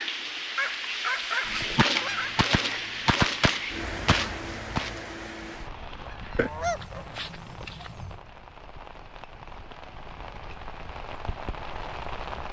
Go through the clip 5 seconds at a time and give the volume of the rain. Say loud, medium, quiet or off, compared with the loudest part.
loud, medium, medium.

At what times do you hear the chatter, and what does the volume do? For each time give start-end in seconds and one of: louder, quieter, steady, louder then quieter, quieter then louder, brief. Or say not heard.
not heard.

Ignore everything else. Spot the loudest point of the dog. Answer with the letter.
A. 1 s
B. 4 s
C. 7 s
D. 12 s
A.